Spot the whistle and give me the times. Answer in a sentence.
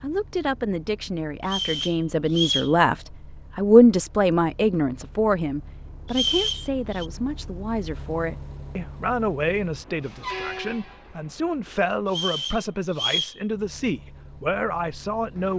The whistle can be heard from 1.4 to 2.8 s, from 6.1 to 7.0 s and from 12.1 to 13.3 s.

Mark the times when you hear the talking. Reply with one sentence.
You can hear the talking from 0.0 to 3.0 s and from 3.5 to 15.5 s.